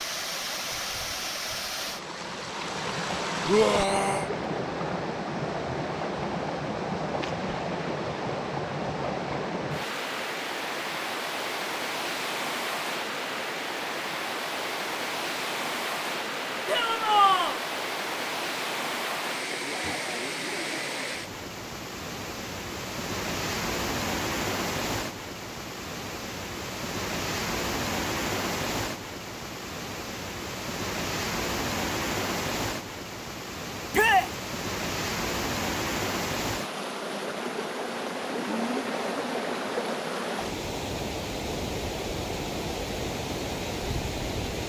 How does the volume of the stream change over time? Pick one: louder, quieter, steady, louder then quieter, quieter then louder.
steady.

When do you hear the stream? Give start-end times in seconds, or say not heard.
0.0-44.6.